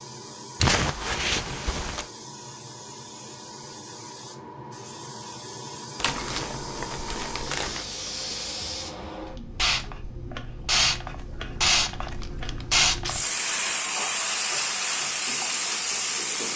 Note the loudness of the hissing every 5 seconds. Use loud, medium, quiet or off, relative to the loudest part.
quiet, medium, loud, loud.